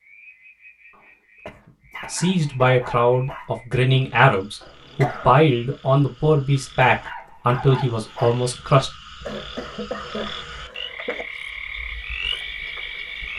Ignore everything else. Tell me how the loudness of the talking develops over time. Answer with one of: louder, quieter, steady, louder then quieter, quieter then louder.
steady.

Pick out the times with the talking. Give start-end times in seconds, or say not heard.
2.0-8.9.